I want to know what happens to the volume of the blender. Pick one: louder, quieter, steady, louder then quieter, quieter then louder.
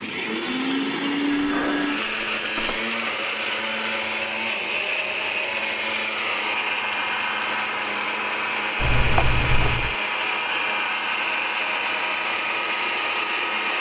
steady.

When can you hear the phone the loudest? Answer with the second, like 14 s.
9 s.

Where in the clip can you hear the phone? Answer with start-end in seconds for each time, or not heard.
1.3-2.9, 8.8-9.9.